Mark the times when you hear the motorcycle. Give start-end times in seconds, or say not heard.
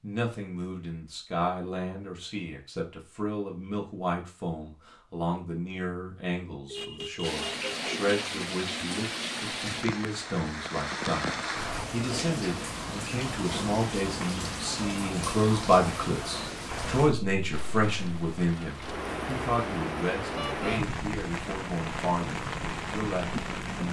not heard.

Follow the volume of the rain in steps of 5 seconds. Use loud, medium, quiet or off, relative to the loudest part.
off, loud, loud, loud, loud.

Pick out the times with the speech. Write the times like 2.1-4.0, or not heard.
0.0-23.8.